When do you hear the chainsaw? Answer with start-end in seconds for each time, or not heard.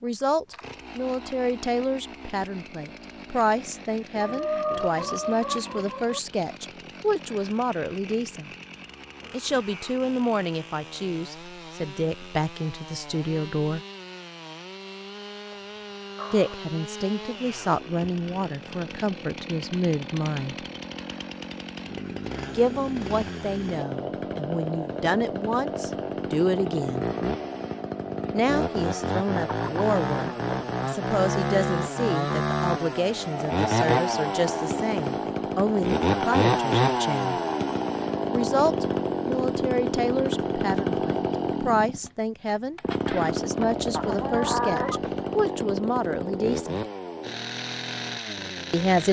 0.0-49.0.